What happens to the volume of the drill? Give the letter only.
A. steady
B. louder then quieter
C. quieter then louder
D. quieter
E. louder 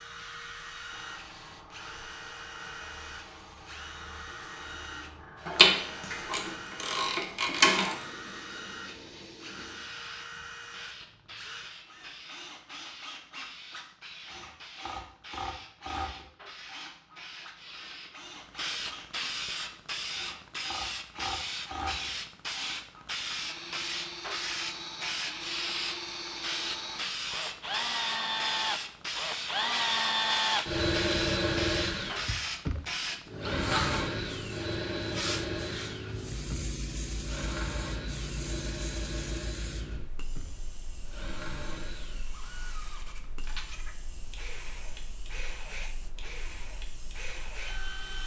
B.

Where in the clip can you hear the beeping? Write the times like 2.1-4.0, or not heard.
not heard.